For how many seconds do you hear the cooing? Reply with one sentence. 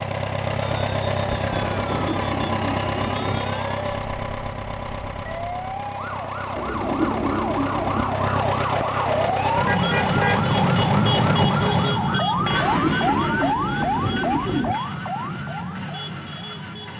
You can hear the cooing for 6 seconds altogether.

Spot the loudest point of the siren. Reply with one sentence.
The volume of the siren peaks at 11 seconds.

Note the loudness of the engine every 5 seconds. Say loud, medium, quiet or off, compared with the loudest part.
loud, loud, loud, quiet.